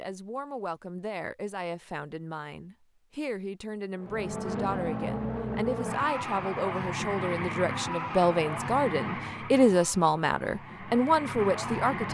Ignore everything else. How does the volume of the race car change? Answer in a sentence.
The loudness of the race car goes down.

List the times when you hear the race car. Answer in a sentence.
You can hear the race car from 4.0 to 12.0 s.